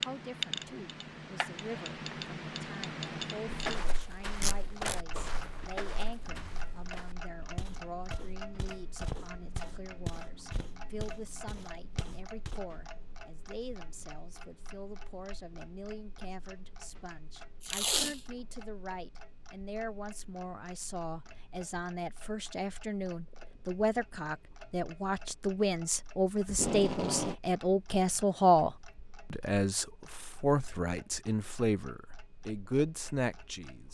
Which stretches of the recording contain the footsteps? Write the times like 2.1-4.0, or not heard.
3.5-12.6.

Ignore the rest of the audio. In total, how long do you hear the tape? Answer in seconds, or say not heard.
2 s.